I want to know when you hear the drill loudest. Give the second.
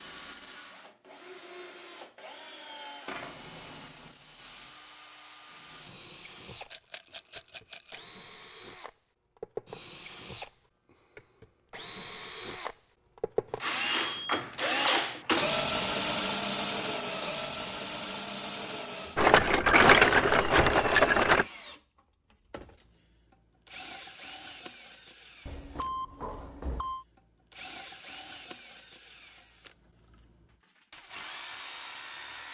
15 s.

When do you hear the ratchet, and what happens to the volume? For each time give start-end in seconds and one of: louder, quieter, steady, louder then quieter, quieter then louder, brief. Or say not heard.
not heard.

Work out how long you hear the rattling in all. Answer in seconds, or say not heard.
4 s.